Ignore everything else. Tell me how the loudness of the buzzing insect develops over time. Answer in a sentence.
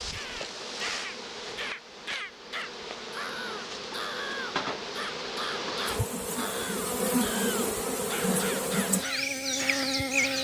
The volume of the buzzing insect goes up.